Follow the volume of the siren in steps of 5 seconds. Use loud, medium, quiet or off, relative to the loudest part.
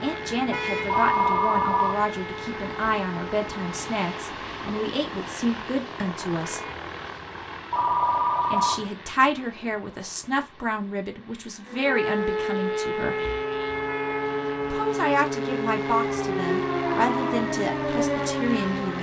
medium, off, loud, loud.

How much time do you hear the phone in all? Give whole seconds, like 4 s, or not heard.
3 s.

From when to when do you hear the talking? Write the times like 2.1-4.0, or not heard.
0.0-6.6, 8.5-13.2, 14.7-18.9.